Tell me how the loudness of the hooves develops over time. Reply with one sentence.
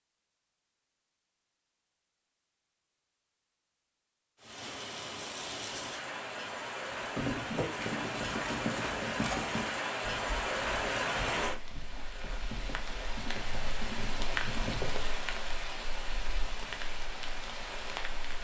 The volume of the hooves goes down, then up.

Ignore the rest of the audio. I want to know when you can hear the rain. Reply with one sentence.
The rain can be heard from 4.4 to 18.3 s.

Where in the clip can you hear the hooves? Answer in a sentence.
The hooves can be heard from 7.2 to 15.1 s.